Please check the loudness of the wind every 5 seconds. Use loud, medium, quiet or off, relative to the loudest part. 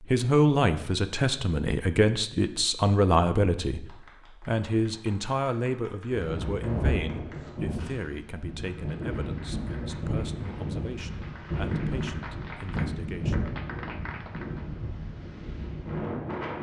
off, loud, loud, loud.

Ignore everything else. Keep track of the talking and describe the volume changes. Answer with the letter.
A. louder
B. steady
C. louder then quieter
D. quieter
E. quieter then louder
D.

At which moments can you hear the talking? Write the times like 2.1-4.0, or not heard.
0.1-13.4.